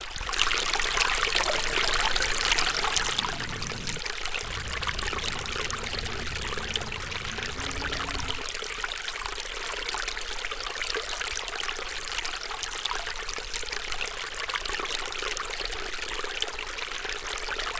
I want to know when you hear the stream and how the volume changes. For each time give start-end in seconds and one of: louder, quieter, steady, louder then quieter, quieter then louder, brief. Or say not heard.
0.0-17.7 quieter.